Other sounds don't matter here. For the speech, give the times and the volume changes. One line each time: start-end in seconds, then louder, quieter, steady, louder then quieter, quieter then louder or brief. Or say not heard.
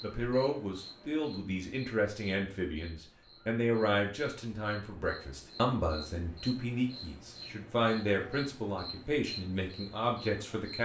0.0-10.7 steady.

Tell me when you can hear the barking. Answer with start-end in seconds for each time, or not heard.
not heard.